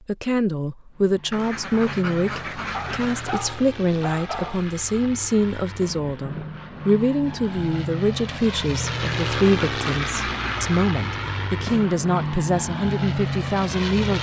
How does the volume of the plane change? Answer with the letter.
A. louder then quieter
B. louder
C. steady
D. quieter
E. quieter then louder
B.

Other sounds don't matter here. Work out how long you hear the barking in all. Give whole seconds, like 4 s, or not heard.
2 s.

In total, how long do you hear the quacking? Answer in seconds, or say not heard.
4 s.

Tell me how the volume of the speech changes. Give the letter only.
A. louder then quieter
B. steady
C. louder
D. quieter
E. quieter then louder
B.